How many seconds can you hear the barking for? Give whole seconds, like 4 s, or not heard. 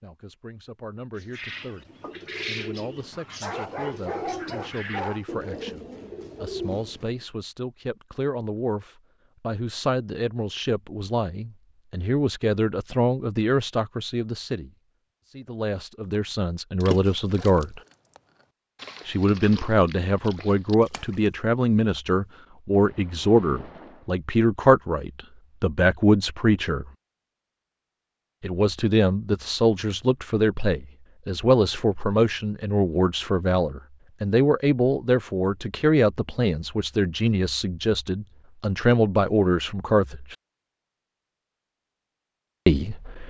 2 s.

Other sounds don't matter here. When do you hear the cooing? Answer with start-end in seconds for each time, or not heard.
1.1-7.2.